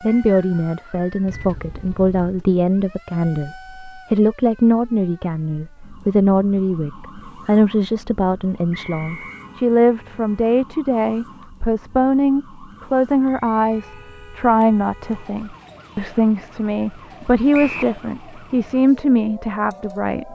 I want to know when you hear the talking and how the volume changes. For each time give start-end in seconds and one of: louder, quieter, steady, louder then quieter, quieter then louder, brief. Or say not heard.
0.0-20.3 steady.